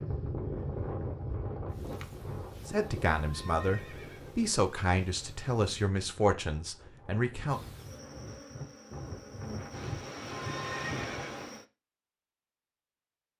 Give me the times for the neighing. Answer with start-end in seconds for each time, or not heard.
3.1-4.3, 10.3-11.2.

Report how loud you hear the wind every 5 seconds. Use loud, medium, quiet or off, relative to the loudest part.
loud, medium, loud.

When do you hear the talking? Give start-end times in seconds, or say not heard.
2.6-7.6.